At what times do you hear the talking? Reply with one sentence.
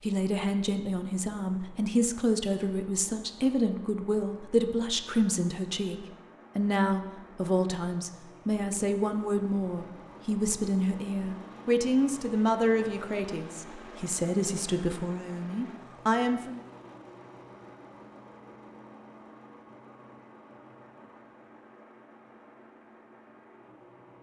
You can hear the talking from 0.0 to 16.6 s.